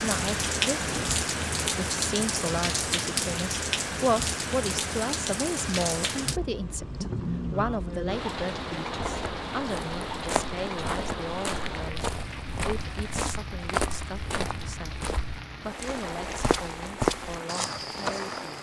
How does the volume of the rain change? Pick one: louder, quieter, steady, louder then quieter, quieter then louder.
quieter.